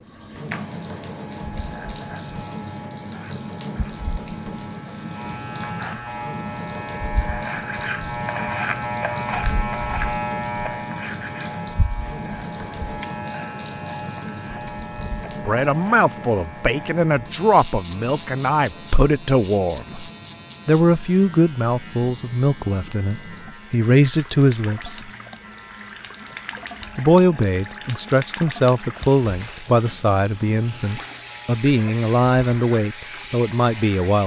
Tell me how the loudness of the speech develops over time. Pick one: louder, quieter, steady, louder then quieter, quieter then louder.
steady.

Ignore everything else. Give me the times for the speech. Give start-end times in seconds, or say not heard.
15.4-20.1, 20.6-25.1, 26.9-34.2.